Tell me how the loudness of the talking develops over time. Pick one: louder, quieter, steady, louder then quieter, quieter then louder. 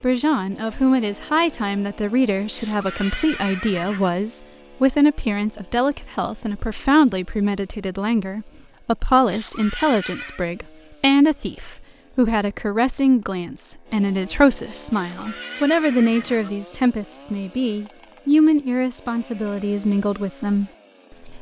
steady.